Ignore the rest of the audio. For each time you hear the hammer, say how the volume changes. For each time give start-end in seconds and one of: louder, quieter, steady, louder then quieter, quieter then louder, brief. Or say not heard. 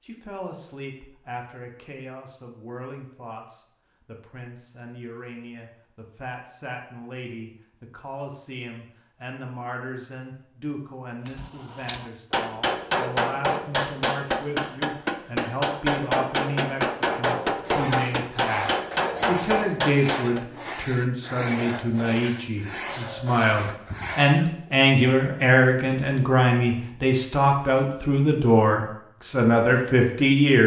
11.2-20.4 steady.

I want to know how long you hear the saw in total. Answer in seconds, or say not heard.
7 s.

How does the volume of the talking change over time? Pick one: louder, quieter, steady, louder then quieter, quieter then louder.
louder.